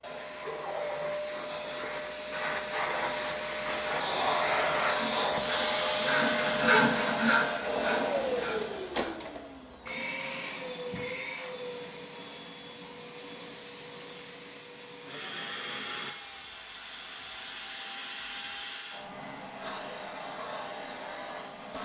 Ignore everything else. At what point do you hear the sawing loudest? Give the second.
7 s.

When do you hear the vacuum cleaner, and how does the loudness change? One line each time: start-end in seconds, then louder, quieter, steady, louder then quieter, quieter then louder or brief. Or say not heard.
0.0-21.8 quieter.